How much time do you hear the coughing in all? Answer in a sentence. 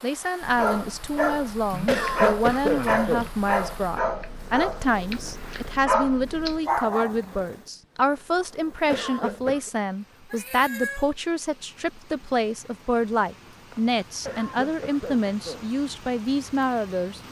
You can hear the coughing for 4 seconds altogether.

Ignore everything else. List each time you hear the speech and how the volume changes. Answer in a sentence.
The speech can be heard from 0.0 to 17.2 s, at a steady volume.